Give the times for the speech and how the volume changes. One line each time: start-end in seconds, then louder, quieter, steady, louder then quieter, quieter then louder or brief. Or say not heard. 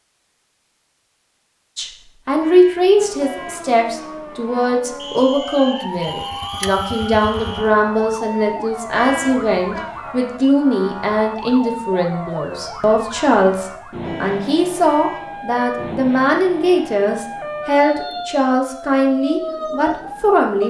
1.8-20.6 steady.